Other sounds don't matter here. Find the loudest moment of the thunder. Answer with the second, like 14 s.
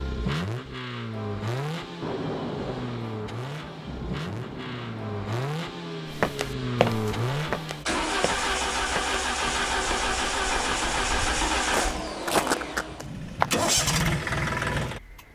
2 s.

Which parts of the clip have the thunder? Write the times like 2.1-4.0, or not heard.
2.0-5.5.